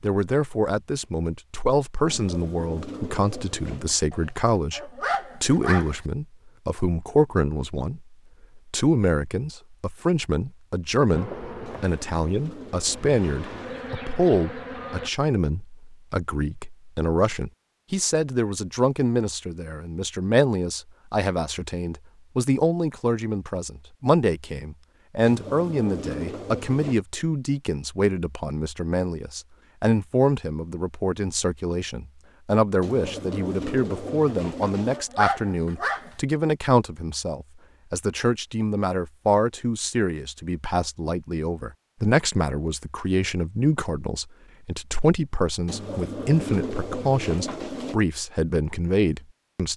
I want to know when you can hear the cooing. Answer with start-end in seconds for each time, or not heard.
2.0-4.0, 11.7-14.0, 25.2-26.9, 32.8-35.0, 45.6-48.0.